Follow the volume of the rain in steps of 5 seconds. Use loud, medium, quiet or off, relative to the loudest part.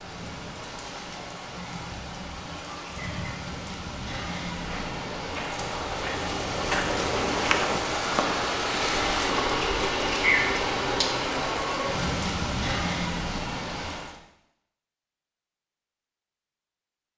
medium, loud, loud, off.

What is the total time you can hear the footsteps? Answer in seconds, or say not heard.
3 s.